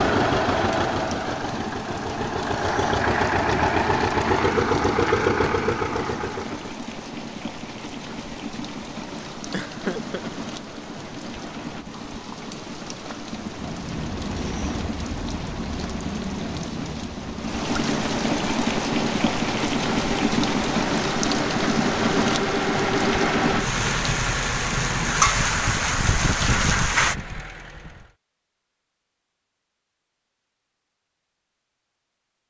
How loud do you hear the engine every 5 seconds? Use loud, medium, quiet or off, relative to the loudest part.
loud, loud, medium, medium, medium, medium, off.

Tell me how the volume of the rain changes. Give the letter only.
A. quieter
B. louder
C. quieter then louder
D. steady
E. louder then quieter
B.